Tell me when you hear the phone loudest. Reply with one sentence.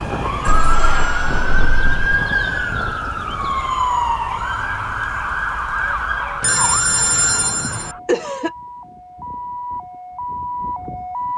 The volume of the phone peaks at 7 seconds.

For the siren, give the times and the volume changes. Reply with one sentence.
The siren can be heard from 0.0 to 11.3 s, getting quieter.